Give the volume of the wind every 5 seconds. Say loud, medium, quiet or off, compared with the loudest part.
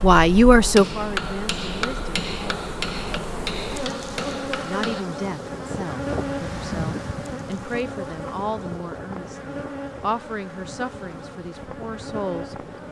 off, loud, medium.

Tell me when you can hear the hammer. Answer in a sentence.
The hammer can be heard from 0.0 to 5.0 s.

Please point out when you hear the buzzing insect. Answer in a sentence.
You can hear the buzzing insect from 0.0 to 12.8 s.